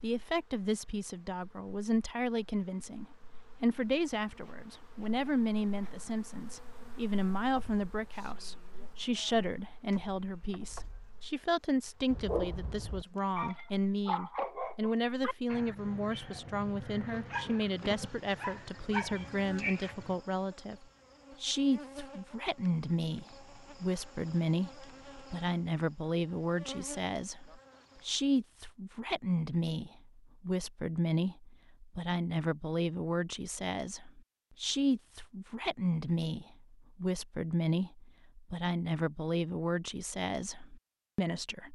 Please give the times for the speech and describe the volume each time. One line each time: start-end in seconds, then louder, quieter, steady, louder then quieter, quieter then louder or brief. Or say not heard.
0.0-41.6 steady.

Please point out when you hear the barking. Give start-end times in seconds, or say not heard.
12.1-20.1.